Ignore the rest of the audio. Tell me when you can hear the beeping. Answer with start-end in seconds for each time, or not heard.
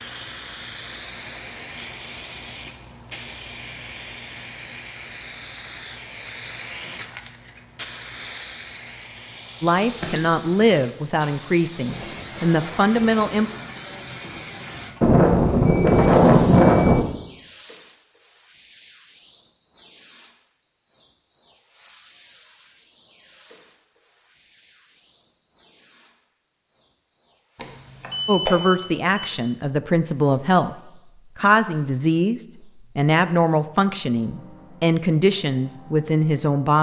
9.7-10.3, 15.0-17.0, 27.6-29.4.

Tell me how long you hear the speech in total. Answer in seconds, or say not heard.
12 s.